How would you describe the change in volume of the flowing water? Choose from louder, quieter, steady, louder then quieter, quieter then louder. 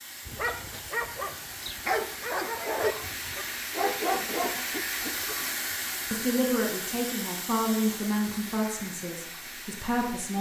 louder then quieter.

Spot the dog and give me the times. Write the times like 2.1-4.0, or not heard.
0.2-5.3.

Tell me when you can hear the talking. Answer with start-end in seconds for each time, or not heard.
6.1-10.3.